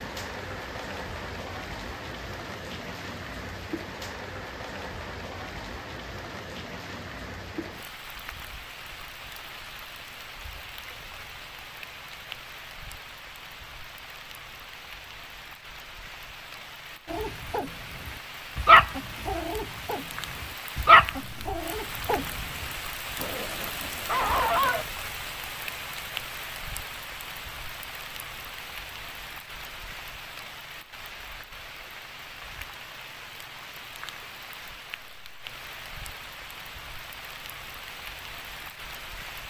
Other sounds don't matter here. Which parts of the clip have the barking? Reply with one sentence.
The barking can be heard from 17.1 to 24.9 s.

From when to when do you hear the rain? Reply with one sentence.
The rain can be heard from 0.0 to 39.4 s.